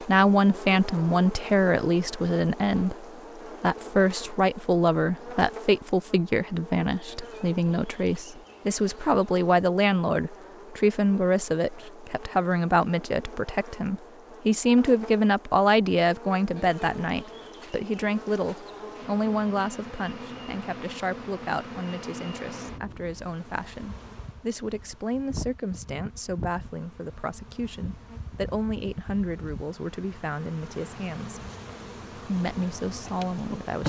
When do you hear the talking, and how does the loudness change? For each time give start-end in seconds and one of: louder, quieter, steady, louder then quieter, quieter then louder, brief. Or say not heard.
0.0-31.4 quieter
32.1-33.8 brief.